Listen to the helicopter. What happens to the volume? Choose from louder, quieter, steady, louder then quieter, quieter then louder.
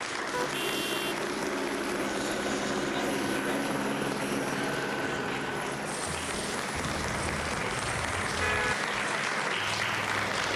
quieter.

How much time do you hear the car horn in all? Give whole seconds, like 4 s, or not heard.
3 s.